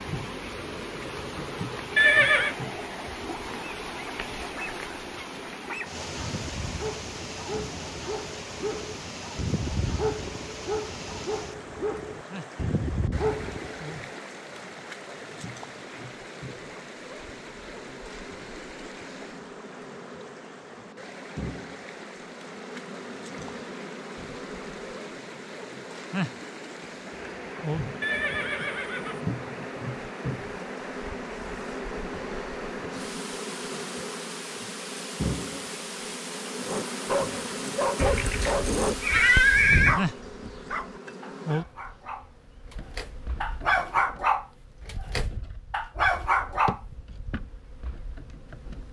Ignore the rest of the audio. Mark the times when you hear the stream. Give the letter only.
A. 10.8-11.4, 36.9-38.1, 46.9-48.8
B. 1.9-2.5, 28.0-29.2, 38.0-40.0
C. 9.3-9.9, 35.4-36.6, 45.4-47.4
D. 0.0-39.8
D.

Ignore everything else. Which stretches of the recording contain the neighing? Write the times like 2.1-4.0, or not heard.
1.9-2.5, 28.0-29.2, 38.0-40.0.